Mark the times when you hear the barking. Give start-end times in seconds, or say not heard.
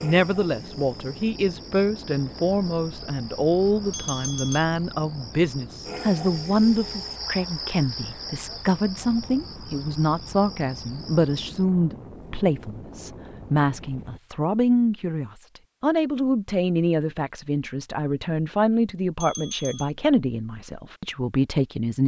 not heard.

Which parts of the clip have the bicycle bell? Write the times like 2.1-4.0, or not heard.
3.9-4.7, 19.2-19.9.